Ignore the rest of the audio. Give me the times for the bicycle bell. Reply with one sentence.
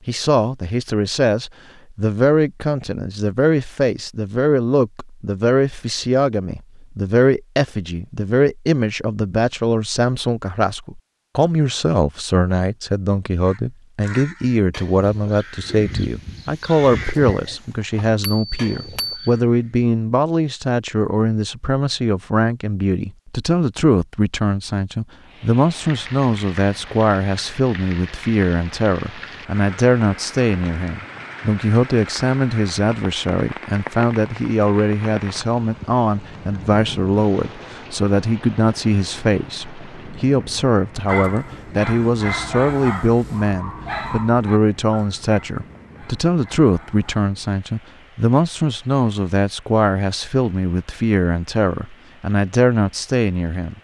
You can hear the bicycle bell from 18.2 to 19.4 s.